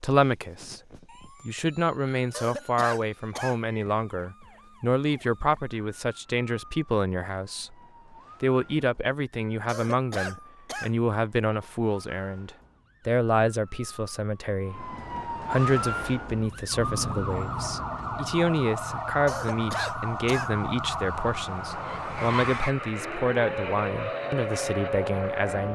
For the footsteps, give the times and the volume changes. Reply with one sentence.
You can't hear the footsteps here.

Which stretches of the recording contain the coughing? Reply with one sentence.
You can hear the coughing from 2.3 to 3.6 s, from 9.7 to 10.9 s and from 19.2 to 20.5 s.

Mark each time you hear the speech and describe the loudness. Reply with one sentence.
You can hear the speech briefly from 0.0 to 0.8 s; from 1.4 to 7.8 s, at a steady volume; and from 8.4 to 25.7 s, at a steady volume.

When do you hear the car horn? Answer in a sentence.
The car horn can't be heard in this clip.